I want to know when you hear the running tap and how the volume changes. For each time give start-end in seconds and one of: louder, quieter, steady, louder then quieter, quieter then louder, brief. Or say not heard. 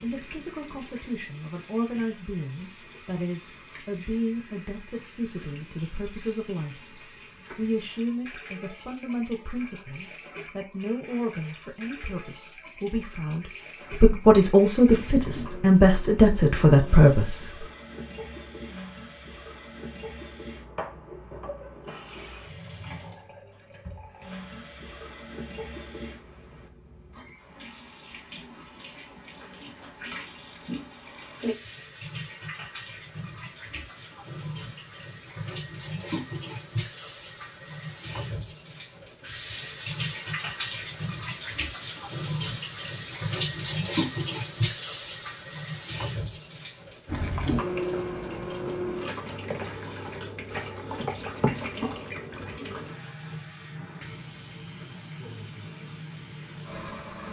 0.0-57.2 louder.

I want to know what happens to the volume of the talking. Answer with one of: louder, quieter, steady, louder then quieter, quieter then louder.
louder.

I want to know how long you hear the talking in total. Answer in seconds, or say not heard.
18 s.